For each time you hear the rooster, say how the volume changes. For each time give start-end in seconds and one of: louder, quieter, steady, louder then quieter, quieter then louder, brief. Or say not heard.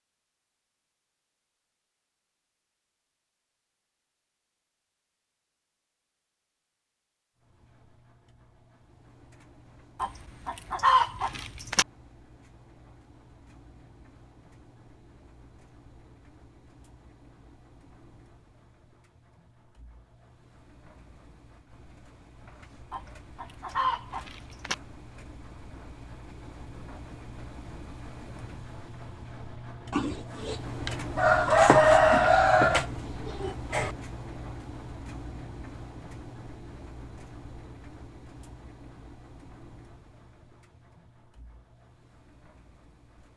10.0-11.8 brief
22.9-24.8 brief
29.9-33.9 louder then quieter.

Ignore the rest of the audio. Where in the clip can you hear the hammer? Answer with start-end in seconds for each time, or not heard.
not heard.